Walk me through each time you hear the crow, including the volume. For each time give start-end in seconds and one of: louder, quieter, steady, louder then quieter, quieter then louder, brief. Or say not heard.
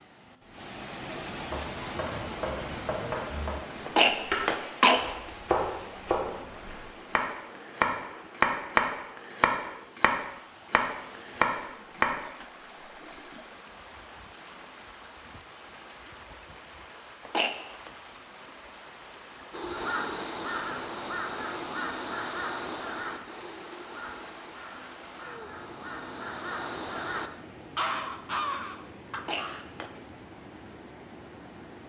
19.5-29.6 quieter then louder.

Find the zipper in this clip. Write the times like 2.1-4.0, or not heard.
not heard.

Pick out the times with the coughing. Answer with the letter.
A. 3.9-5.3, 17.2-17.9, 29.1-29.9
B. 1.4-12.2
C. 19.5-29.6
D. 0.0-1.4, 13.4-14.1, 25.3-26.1
A.